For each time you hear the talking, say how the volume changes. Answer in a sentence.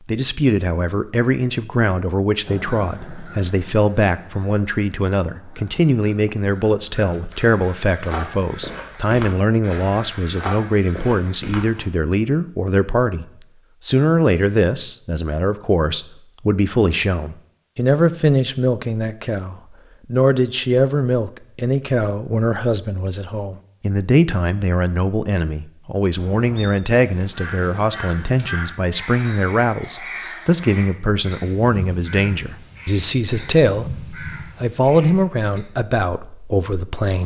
You can hear the talking from 0.1 to 13.2 s, at a steady volume; and from 13.8 to 37.2 s, at a steady volume.